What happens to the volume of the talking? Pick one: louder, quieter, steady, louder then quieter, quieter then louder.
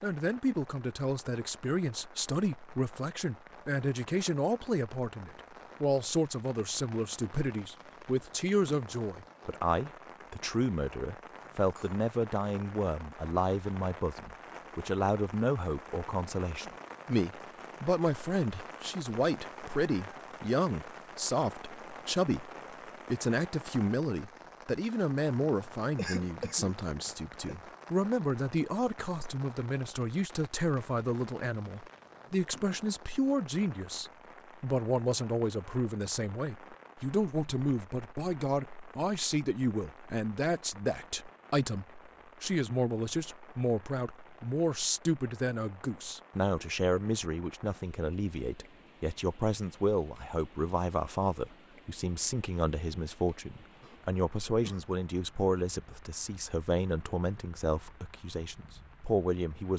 steady.